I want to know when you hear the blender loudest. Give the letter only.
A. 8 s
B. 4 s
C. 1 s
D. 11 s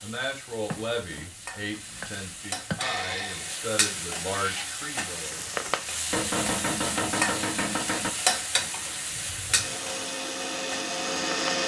D.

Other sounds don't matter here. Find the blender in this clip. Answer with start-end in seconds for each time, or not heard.
2.8-4.7, 9.1-11.6.